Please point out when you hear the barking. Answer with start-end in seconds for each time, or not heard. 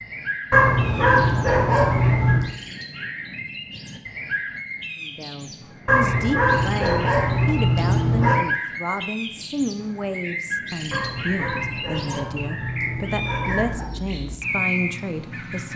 0.5-2.5, 5.8-8.4, 10.9-13.9.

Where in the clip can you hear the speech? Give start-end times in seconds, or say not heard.
5.0-15.7.